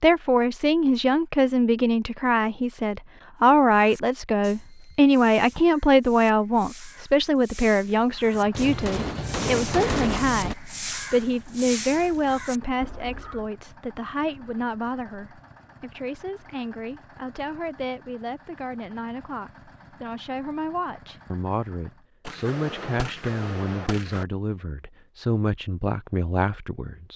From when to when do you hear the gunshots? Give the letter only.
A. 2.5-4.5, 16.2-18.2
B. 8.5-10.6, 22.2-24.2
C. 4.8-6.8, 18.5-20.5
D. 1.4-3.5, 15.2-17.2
B.